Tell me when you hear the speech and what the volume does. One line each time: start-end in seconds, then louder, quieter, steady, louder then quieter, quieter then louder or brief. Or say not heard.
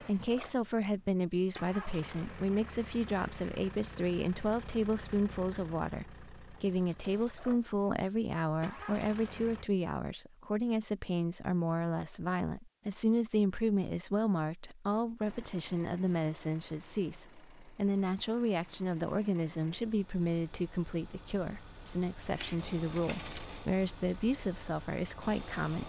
0.0-25.8 steady.